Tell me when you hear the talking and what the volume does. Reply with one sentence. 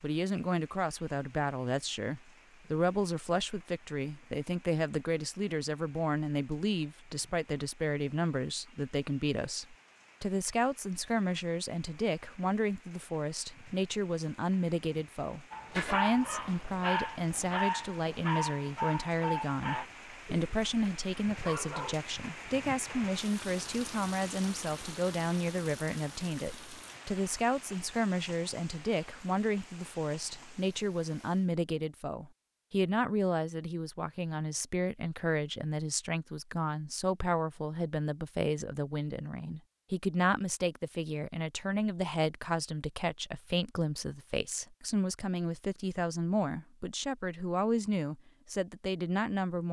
You can hear the talking from 0.0 to 49.6 s, at a steady volume.